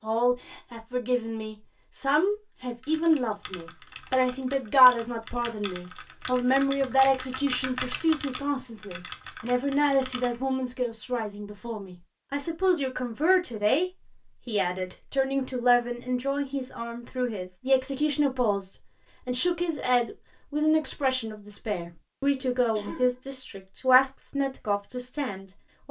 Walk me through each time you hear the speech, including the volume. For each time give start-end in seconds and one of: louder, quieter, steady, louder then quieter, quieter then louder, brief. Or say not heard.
0.0-25.8 steady.